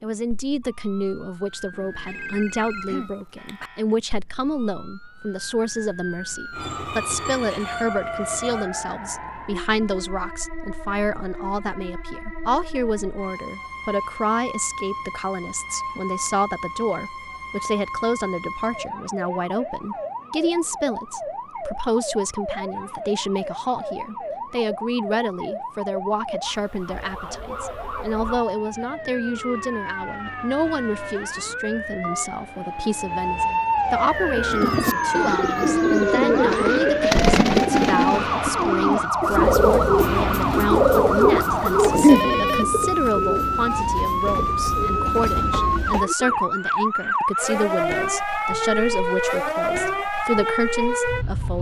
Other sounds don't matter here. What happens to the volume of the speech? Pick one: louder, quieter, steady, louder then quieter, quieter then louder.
steady.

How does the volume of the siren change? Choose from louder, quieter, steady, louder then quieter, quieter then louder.
louder.